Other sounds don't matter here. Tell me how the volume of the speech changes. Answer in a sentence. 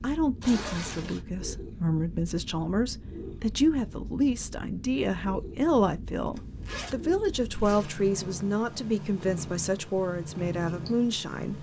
The loudness of the speech stays about the same.